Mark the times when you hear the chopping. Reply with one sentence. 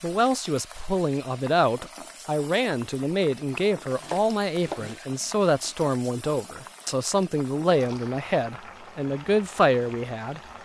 The chopping can be heard from 4.0 to 5.0 s.